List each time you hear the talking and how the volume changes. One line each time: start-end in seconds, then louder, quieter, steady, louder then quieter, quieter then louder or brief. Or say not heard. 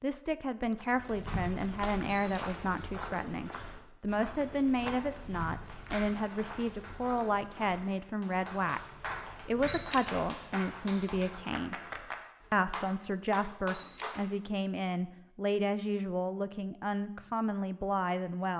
0.0-11.8 steady
12.5-18.5 steady.